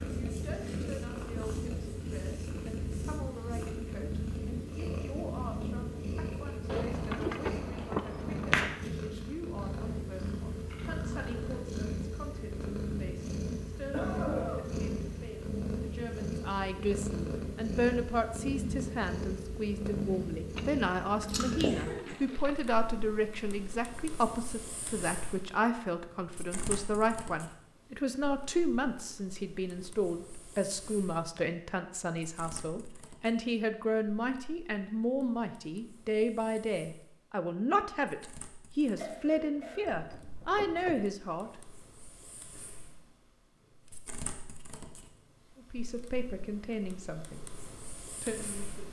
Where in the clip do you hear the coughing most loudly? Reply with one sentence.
The volume of the coughing peaks at 14 seconds.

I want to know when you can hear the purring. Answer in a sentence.
The purring can be heard from 0.0 to 48.8 s.